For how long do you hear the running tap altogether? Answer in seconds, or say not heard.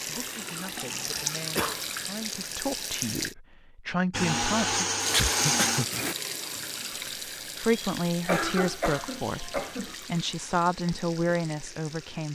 11 s.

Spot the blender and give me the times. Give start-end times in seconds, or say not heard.
4.1-6.2.